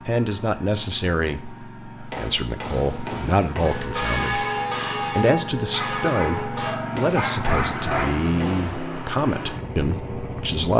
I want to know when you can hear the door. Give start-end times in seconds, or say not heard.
not heard.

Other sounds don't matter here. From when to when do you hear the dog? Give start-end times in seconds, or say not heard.
5.7-8.2.